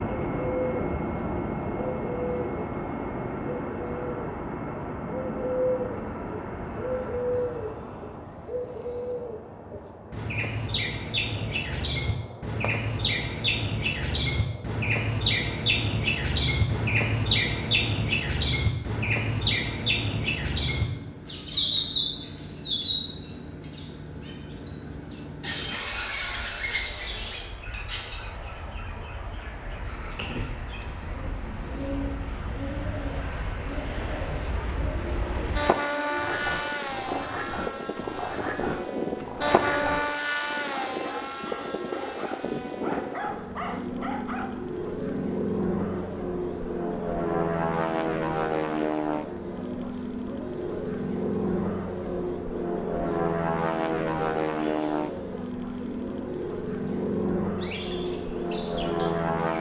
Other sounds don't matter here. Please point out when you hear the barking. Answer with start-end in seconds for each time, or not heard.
36.1-44.5.